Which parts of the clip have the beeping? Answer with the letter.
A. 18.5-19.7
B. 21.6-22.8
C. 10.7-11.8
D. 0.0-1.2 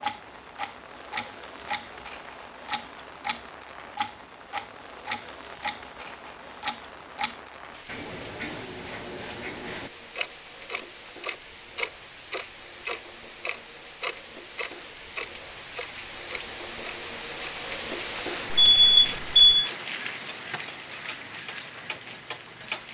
A.